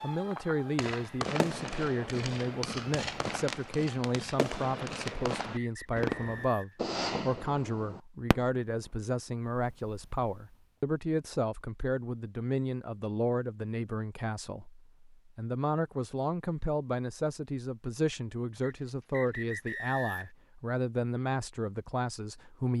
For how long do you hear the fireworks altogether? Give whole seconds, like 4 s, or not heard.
10 s.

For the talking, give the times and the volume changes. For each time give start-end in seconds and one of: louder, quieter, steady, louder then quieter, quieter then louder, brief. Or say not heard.
0.0-22.7 steady.